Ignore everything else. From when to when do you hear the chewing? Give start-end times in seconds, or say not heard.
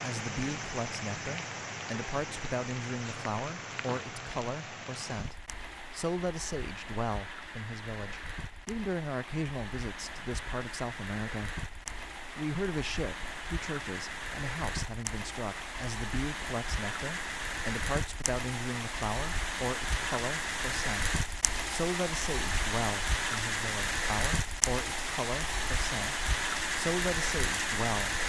not heard.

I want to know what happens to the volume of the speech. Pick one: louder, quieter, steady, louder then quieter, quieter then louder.
steady.